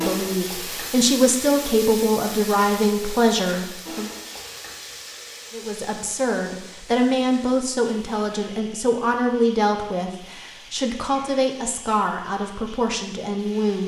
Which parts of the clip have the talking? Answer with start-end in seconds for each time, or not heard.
0.0-4.1, 5.5-13.8.